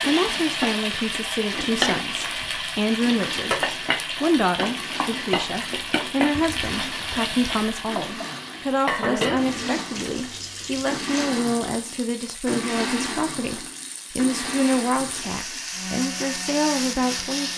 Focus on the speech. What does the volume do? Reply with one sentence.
The volume of the speech stays about the same.